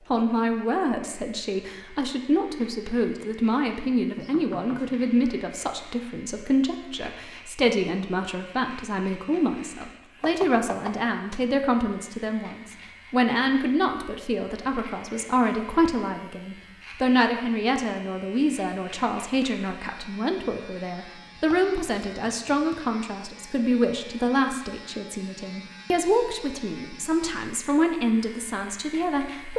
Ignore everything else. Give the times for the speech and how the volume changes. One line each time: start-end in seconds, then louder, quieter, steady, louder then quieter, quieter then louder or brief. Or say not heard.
0.1-29.5 steady.